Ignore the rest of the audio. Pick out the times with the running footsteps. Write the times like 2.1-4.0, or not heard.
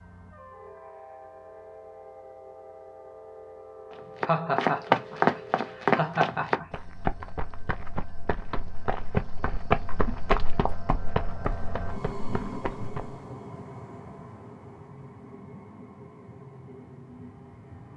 3.9-13.2.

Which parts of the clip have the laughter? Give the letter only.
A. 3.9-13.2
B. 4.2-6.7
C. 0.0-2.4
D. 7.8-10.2
B.